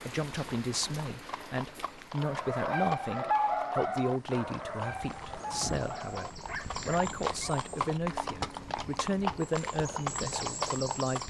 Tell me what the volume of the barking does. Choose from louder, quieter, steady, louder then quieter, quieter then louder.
quieter.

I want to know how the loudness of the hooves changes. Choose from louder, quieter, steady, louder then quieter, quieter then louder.
louder.